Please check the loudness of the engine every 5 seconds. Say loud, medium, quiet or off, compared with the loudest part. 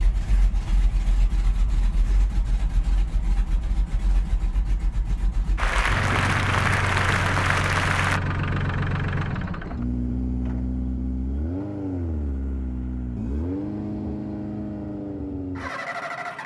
medium, loud, loud, loud.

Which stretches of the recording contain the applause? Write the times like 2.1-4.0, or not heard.
5.5-8.2.